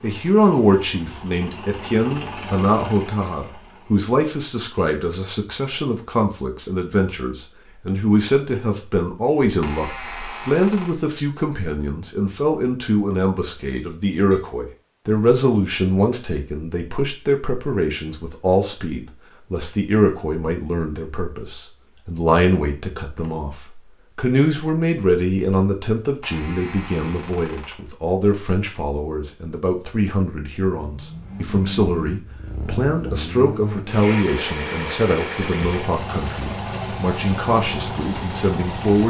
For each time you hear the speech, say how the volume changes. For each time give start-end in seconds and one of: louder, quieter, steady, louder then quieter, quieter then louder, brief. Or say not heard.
0.0-39.0 steady.